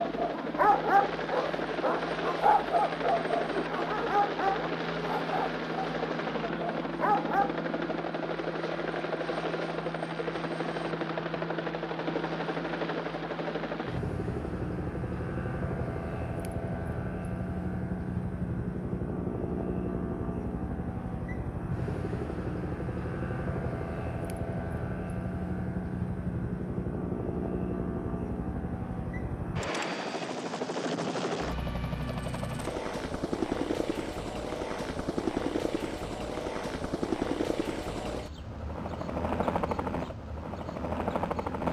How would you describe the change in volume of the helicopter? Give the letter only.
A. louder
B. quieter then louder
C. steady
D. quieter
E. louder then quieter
C.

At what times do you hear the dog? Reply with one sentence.
The dog can be heard from 0.0 to 7.5 s.